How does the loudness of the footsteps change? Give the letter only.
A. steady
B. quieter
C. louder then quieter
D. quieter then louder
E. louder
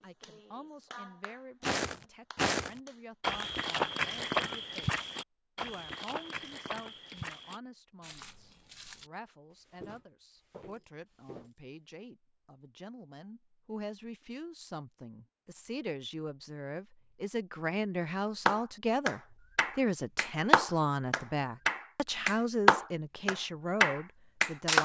B.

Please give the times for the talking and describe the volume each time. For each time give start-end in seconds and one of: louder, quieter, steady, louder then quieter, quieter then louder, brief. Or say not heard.
0.0-24.8 louder.